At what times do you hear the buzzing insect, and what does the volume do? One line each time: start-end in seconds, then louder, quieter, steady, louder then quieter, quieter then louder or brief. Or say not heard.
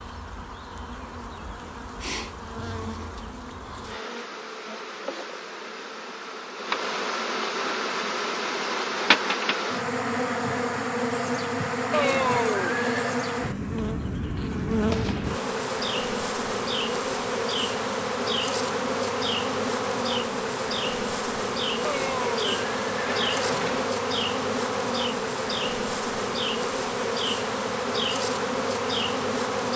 0.0-29.7 louder.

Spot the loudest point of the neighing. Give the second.
12 s.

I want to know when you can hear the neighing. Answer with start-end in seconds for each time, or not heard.
11.9-13.2, 21.8-23.9.